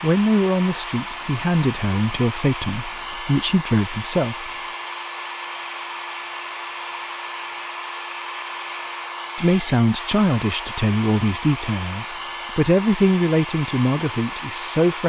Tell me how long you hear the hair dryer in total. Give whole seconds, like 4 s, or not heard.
15 s.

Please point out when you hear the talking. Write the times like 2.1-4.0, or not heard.
0.0-4.5, 9.3-15.0.